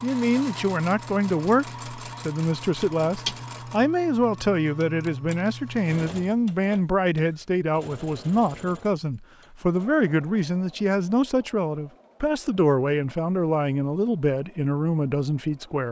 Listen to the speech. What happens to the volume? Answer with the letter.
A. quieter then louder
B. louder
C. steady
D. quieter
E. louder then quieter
C.